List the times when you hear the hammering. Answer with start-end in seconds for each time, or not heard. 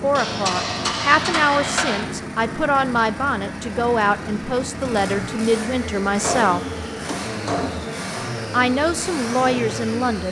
0.1-2.0, 6.2-8.0.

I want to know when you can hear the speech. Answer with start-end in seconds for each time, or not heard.
0.0-6.6, 8.2-10.2.